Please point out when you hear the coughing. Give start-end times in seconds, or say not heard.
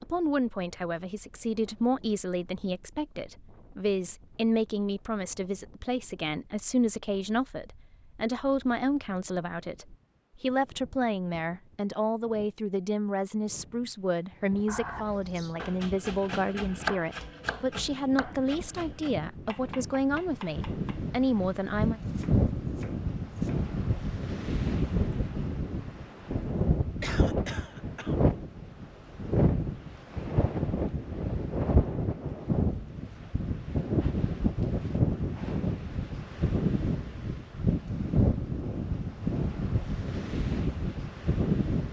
14.7-15.6, 27.0-28.1.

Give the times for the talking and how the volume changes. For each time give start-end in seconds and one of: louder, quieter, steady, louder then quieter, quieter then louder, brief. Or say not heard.
0.0-22.0 steady.